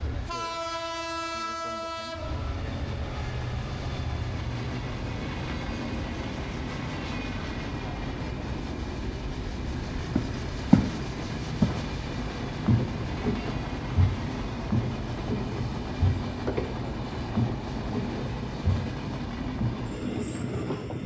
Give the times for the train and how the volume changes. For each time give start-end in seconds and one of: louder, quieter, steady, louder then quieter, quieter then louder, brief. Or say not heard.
0.0-21.0 steady.